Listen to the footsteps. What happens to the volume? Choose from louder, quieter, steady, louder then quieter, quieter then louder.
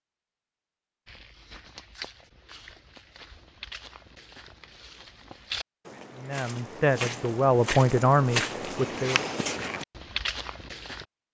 louder.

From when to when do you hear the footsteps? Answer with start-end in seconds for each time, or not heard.
1.1-11.1.